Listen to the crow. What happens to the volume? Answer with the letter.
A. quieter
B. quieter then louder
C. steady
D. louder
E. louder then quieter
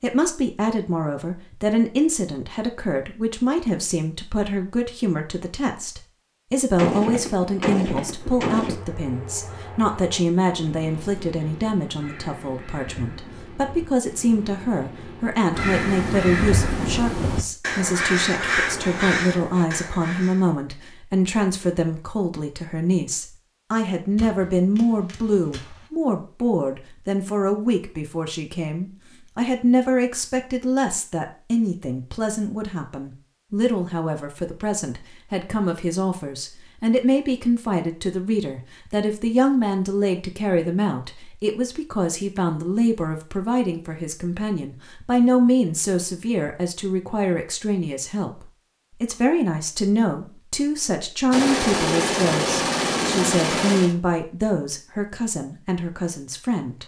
D.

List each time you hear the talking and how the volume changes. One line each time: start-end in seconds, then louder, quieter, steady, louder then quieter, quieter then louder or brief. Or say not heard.
0.0-56.8 steady.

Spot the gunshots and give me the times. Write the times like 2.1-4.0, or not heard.
6.8-8.8, 24.1-25.9, 51.3-54.0.